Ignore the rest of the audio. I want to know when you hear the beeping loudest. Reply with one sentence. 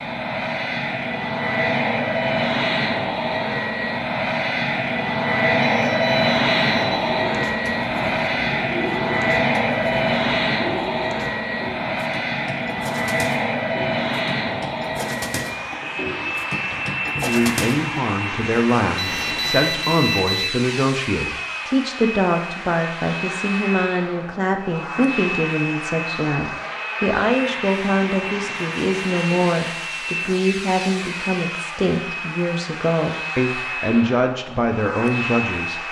The volume of the beeping peaks at 20 seconds.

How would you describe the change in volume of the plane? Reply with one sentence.
The volume of the plane goes down.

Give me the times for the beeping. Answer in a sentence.
You can hear the beeping from 5.6 to 7.1 s and from 18.9 to 20.5 s.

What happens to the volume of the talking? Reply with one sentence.
The volume of the talking stays about the same.